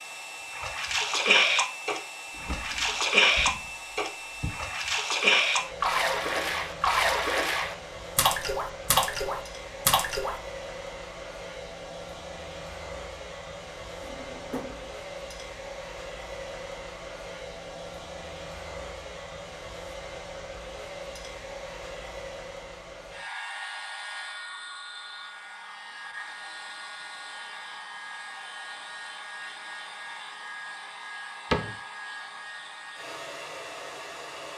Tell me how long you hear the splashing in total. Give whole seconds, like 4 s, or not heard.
10 s.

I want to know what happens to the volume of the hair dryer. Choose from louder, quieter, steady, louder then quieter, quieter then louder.
steady.